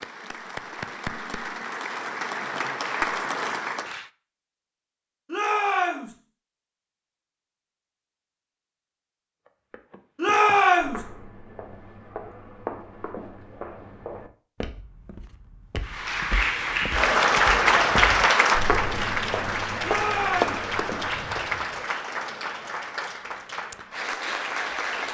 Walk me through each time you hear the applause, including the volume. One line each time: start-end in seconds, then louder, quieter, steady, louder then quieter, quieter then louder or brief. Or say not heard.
0.0-4.0 louder
15.8-25.0 quieter.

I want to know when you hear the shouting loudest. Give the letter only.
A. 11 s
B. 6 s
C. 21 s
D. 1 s
A.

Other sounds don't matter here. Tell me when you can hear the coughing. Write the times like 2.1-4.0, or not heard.
not heard.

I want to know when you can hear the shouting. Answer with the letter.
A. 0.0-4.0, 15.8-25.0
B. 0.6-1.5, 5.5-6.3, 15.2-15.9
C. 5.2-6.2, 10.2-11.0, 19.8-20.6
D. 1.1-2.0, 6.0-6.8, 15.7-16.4
C.